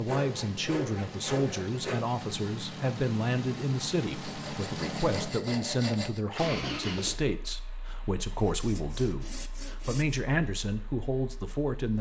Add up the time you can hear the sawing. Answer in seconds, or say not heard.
6 s.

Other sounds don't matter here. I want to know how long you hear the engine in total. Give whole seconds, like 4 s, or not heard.
12 s.